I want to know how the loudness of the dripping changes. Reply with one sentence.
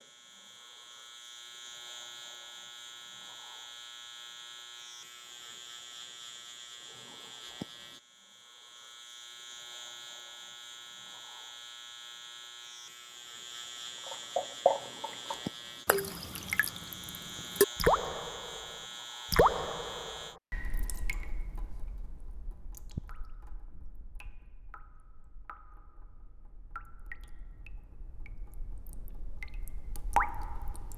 The loudness of the dripping goes down, then up.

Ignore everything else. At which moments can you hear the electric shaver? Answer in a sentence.
You can hear the electric shaver from 0.0 to 20.4 s.